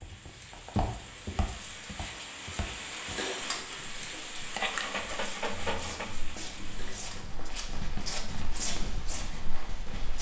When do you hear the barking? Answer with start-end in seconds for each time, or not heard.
4.5-6.1.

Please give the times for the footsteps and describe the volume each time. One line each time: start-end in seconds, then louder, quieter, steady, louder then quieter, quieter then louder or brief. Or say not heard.
0.0-10.1 quieter then louder.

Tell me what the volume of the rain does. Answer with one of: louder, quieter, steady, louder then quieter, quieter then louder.
louder then quieter.